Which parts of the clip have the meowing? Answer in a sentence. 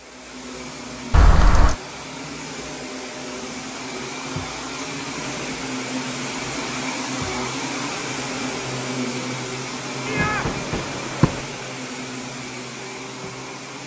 You can hear the meowing from 1.1 to 1.8 s and from 10.1 to 11.4 s.